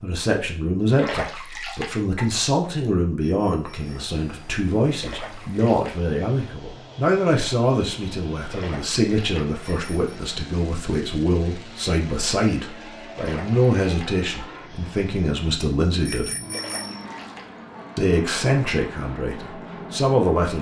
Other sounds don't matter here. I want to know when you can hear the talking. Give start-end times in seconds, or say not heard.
0.0-16.3, 17.9-20.5.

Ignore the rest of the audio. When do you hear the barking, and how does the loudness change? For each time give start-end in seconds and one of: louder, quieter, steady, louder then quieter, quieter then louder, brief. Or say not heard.
not heard.